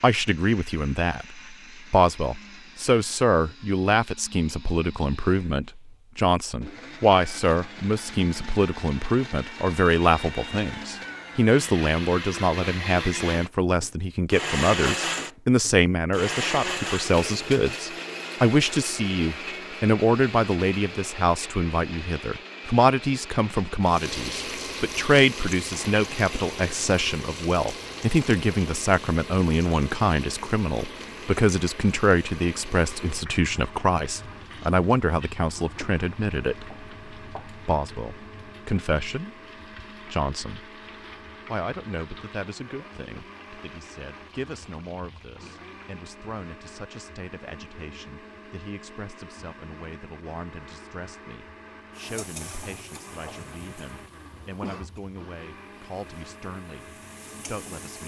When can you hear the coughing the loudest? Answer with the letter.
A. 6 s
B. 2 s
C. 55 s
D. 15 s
C.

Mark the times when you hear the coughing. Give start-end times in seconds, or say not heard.
53.4-55.0.